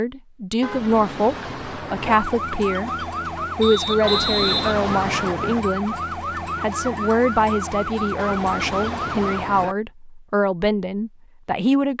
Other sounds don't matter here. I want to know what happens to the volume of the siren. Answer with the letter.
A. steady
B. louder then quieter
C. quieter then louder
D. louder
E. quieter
A.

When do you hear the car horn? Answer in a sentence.
The car horn can be heard from 0.6 to 2.2 s, from 4.0 to 5.3 s and from 8.2 to 9.8 s.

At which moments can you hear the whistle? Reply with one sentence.
You can hear the whistle from 3.6 to 5.6 s.